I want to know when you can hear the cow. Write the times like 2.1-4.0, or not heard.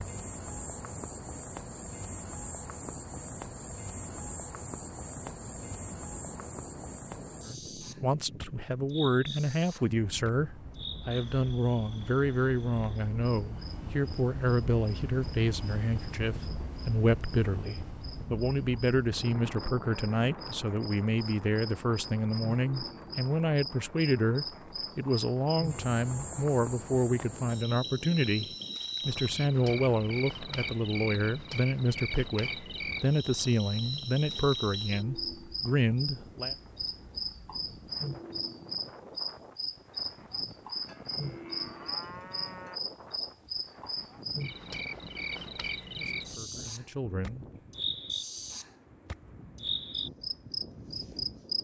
40.9-42.8.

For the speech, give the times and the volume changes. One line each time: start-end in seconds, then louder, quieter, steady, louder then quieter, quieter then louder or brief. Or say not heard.
7.5-36.5 steady
45.8-47.5 brief.